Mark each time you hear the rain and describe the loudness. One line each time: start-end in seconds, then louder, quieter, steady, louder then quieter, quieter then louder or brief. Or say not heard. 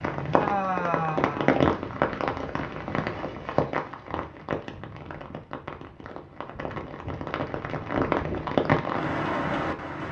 0.0-10.0 quieter then louder.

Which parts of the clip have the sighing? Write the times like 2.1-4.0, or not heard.
0.3-1.6.